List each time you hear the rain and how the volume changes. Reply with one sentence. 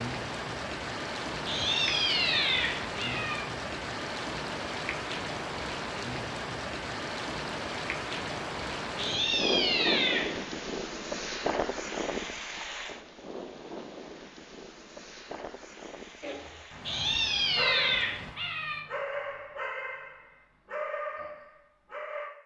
You can hear the rain from 0.0 to 18.4 s, getting quieter.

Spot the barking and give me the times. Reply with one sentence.
The barking can be heard from 16.2 to 22.3 s.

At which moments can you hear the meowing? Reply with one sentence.
You can hear the meowing from 1.4 to 3.5 s, from 8.9 to 10.4 s and from 16.8 to 18.8 s.